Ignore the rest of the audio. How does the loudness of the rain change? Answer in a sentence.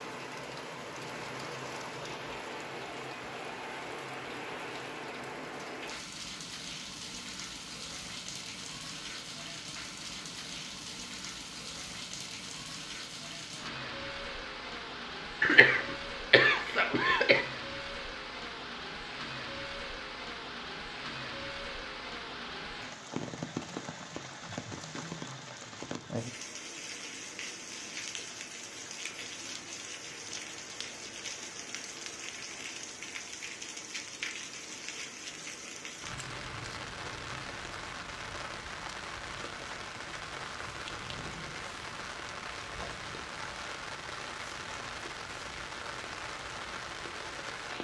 The volume of the rain stays about the same.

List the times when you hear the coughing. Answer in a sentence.
The coughing can be heard from 15.4 to 17.4 s.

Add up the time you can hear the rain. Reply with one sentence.
You can hear the rain for 48 seconds altogether.